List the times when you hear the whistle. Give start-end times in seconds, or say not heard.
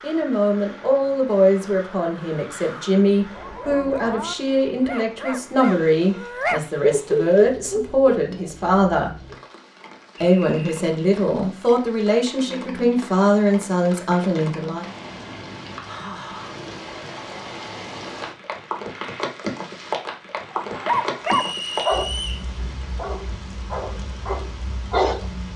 10.3-10.8, 21.2-22.4.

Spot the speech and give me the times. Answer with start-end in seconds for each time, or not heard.
0.0-9.1, 10.2-14.9.